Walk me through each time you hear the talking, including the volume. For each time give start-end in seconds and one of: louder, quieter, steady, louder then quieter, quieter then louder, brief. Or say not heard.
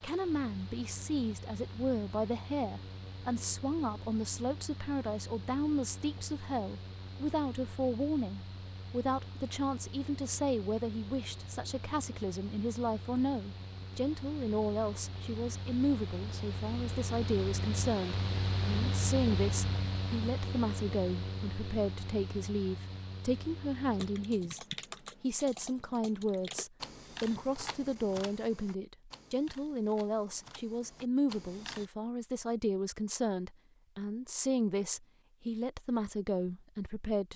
0.0-37.3 steady.